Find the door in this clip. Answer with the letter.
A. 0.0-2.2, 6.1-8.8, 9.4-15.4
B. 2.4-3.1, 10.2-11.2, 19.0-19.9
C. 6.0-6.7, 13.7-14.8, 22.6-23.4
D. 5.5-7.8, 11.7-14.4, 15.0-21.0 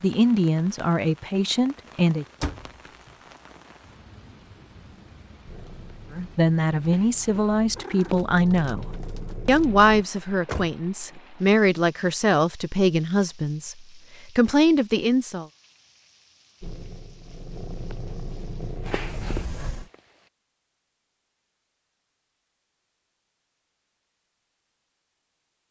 B.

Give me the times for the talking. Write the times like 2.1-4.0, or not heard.
0.0-2.2, 6.1-8.8, 9.4-15.4.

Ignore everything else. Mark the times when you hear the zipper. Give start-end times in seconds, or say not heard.
not heard.